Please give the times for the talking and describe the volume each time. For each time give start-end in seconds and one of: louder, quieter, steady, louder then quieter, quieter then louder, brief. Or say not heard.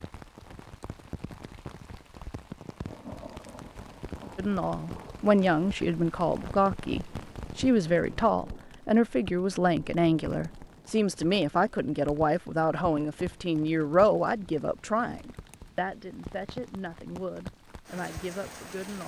4.3-19.0 quieter.